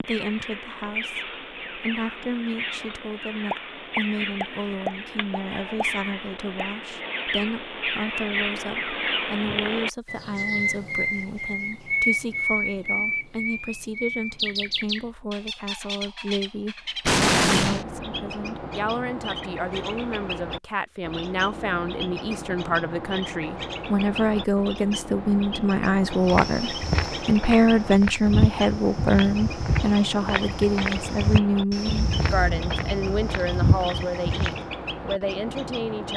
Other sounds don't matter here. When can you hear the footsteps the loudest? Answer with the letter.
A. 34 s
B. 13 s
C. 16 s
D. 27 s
A.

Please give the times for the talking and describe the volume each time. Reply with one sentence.
The talking can be heard from 0.0 to 36.1 s, getting louder.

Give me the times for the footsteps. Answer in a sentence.
You can hear the footsteps from 26.2 to 34.7 s.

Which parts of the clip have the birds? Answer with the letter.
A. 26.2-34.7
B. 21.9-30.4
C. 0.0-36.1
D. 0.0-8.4
C.